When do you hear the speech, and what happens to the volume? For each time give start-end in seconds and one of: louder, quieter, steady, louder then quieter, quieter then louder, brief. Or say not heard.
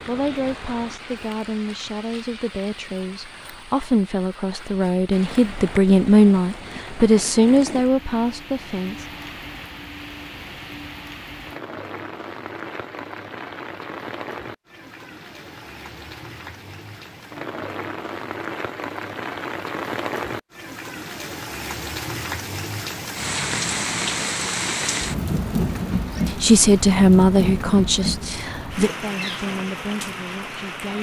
0.1-9.1 louder
26.2-30.9 quieter.